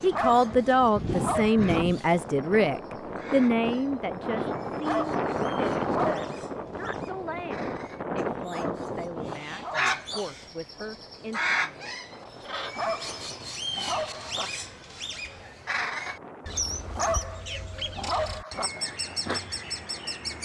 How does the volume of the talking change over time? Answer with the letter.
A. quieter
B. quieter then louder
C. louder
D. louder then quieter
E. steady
A.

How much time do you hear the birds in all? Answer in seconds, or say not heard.
20 s.